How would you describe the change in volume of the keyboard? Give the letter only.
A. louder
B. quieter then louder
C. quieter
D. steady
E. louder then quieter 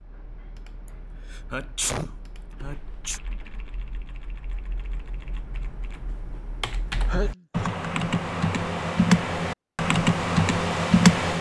A.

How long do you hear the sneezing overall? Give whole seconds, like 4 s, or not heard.
3 s.